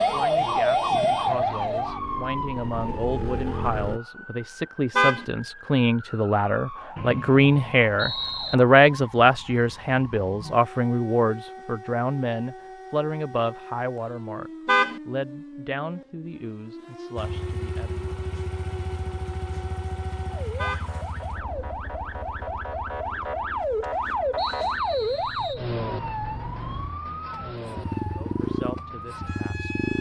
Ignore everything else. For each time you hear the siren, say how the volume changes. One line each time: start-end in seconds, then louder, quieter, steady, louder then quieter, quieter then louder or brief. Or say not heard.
0.0-29.9 quieter then louder.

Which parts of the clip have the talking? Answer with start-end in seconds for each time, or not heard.
0.0-18.0, 28.1-29.7.